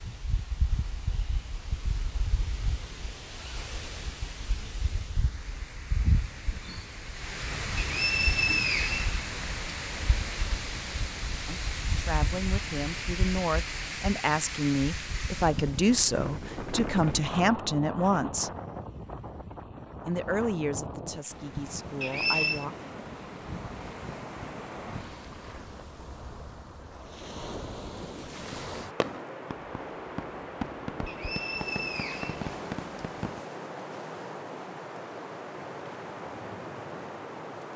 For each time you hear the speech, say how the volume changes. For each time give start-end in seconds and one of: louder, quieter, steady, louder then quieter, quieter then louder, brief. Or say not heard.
11.4-18.5 louder
20.1-22.8 brief.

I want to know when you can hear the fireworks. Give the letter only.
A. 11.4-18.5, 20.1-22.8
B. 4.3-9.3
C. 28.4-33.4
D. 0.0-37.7
C.